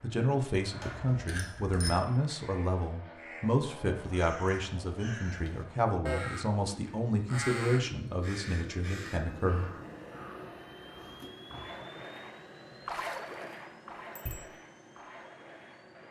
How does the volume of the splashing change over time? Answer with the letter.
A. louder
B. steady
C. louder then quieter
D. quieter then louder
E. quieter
C.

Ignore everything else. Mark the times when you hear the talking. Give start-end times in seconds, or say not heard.
0.0-9.7.